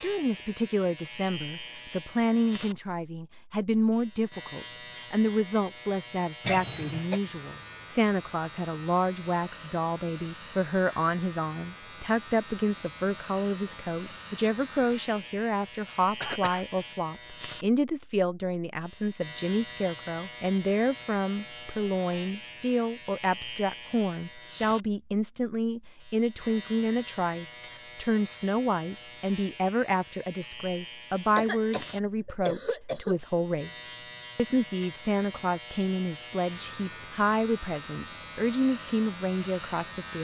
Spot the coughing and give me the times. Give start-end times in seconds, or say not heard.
6.4-7.2, 16.2-16.6, 31.4-33.2.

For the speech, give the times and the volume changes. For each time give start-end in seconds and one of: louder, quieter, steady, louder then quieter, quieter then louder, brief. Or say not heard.
0.0-40.2 steady.